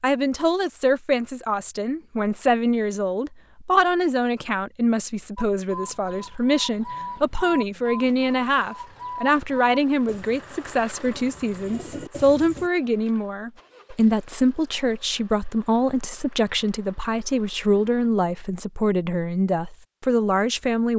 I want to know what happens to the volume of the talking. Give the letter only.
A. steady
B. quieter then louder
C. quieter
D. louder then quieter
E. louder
A.